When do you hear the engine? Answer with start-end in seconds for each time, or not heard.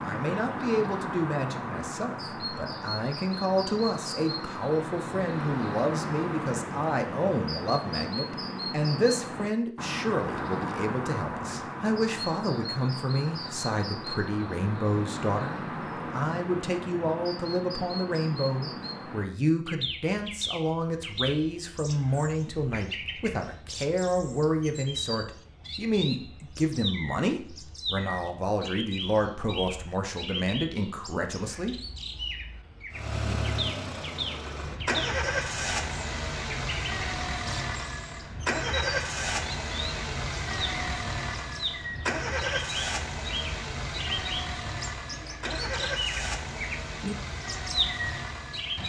32.9-48.8.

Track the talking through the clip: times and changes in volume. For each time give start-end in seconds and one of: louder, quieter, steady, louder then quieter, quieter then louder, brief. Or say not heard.
0.1-31.8 steady.